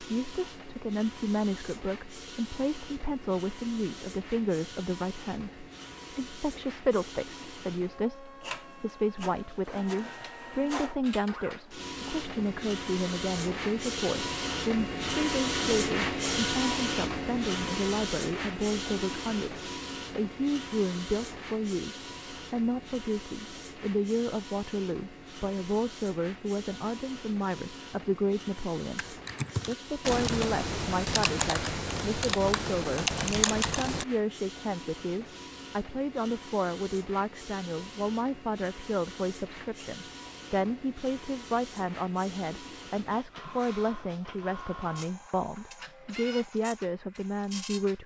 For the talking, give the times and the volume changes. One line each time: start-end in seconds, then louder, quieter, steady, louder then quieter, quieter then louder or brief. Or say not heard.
0.0-48.0 steady.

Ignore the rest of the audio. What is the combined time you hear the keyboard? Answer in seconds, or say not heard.
5 s.